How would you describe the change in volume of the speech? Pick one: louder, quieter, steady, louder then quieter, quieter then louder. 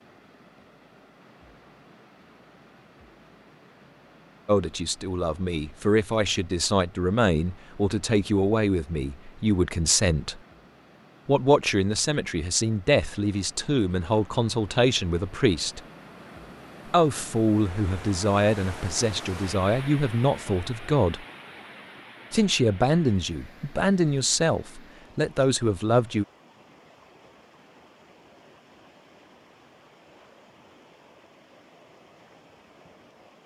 steady.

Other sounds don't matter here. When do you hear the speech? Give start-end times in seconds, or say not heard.
4.5-10.4, 11.2-15.8, 16.9-21.2, 22.3-26.2.